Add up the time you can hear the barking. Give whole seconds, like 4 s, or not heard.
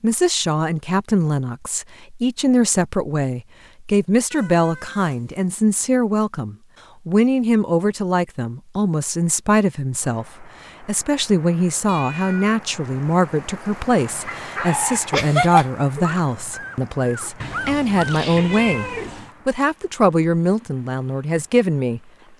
4 s.